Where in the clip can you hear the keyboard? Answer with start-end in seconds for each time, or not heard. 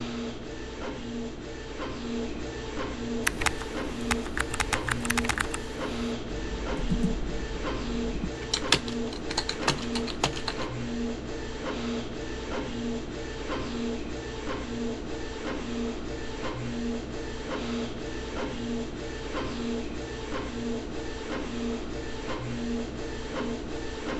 3.2-10.7.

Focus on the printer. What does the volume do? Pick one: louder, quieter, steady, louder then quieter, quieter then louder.
steady.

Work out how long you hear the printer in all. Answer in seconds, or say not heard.
24 s.